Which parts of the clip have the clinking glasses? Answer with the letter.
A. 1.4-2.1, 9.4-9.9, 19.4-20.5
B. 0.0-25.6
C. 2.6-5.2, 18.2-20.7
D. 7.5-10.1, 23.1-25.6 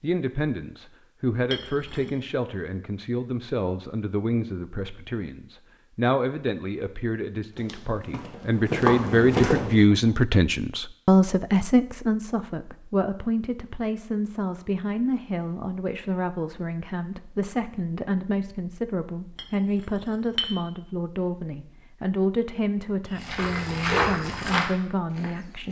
A.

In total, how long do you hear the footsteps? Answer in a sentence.
The footsteps can be heard for 5 seconds in total.